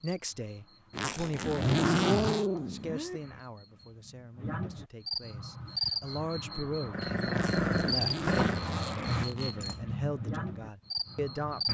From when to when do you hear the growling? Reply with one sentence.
You can hear the growling from 1.1 to 3.2 s and from 6.9 to 8.6 s.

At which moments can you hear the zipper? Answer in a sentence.
You can hear the zipper from 0.9 to 2.5 s and from 7.3 to 9.8 s.